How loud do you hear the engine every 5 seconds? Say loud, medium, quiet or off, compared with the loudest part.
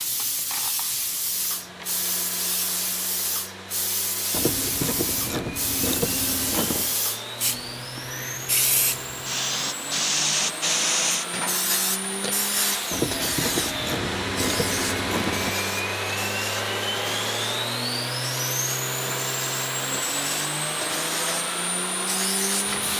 quiet, medium, loud, loud, loud.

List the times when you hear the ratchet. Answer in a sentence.
You can hear the ratchet from 4.3 to 7.0 s and from 12.9 to 15.6 s.